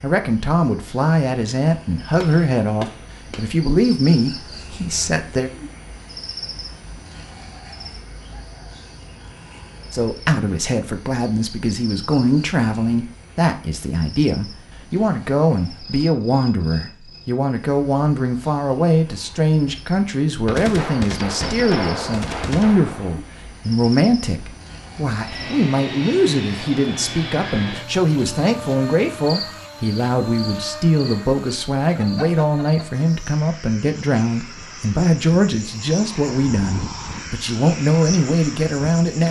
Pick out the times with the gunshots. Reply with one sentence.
You can hear the gunshots from 2.2 to 3.5 s and from 20.4 to 23.2 s.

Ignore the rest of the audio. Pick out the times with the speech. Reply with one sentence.
The speech can be heard from 0.0 to 5.5 s and from 9.9 to 39.2 s.